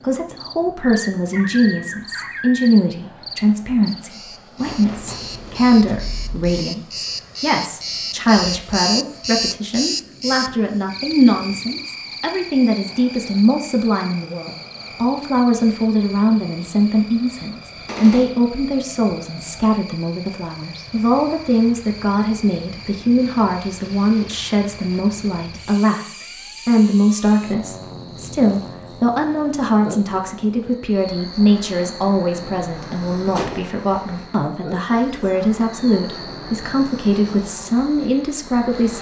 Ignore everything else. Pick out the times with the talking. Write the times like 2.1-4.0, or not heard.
0.0-38.9.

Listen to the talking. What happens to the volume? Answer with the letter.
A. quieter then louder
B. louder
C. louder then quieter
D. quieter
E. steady
E.